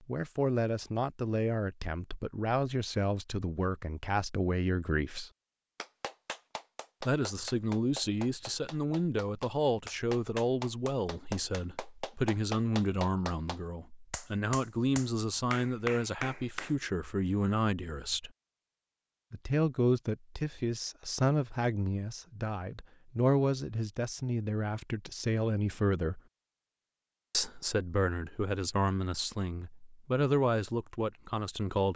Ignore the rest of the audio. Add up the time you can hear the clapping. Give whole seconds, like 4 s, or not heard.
11 s.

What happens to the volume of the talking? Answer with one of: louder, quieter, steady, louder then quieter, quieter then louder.
steady.